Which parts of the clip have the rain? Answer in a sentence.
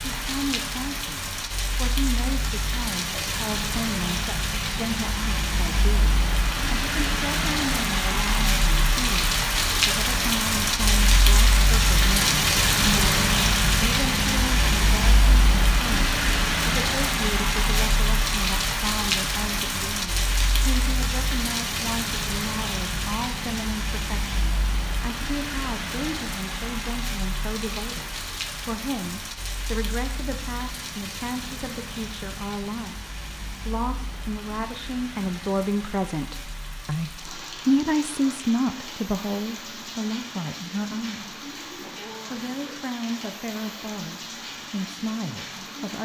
You can hear the rain from 0.0 to 45.9 s.